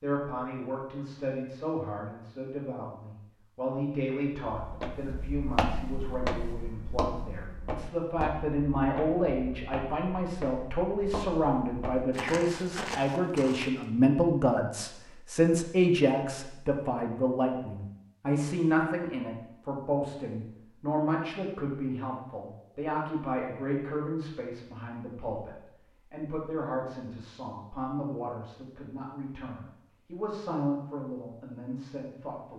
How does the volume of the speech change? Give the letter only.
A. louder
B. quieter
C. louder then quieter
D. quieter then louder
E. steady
C.